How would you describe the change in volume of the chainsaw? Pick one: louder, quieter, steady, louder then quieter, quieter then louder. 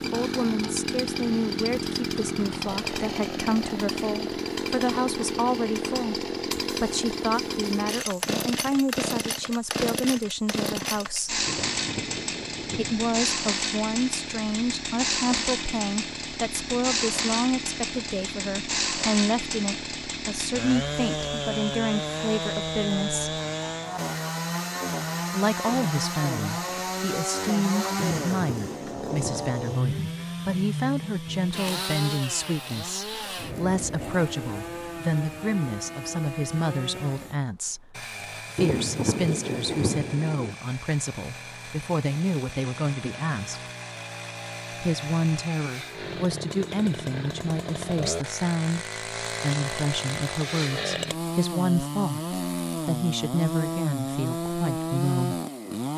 quieter then louder.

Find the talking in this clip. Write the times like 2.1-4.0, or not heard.
0.0-11.4, 12.8-23.4, 25.3-43.6, 44.8-55.4.